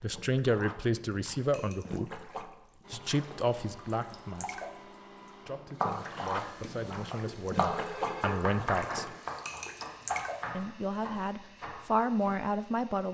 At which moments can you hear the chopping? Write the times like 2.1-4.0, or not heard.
5.8-12.3.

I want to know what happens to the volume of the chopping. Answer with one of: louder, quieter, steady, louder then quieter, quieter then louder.
louder then quieter.